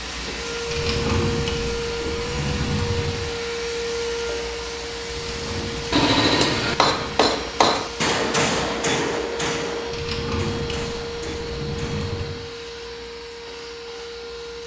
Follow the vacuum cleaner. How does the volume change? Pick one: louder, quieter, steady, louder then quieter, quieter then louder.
quieter.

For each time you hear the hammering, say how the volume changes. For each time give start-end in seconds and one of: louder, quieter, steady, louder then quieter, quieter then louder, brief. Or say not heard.
5.7-12.2 quieter.